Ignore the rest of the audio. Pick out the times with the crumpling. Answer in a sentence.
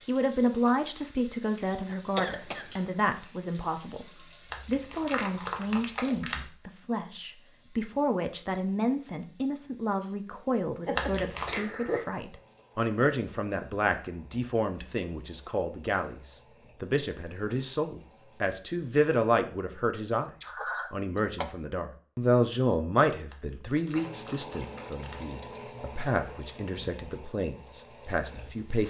The crumpling can be heard from 4.5 to 6.5 s, from 10.9 to 11.6 s and from 23.3 to 25.2 s.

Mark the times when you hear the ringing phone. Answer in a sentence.
You can't hear the ringing phone here.